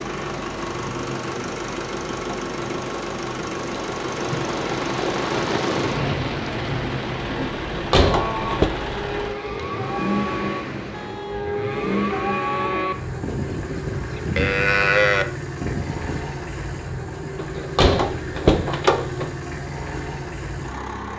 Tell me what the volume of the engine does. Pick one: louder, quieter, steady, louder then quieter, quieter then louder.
steady.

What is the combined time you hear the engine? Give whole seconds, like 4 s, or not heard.
21 s.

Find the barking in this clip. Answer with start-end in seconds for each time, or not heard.
not heard.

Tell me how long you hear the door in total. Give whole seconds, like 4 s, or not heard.
3 s.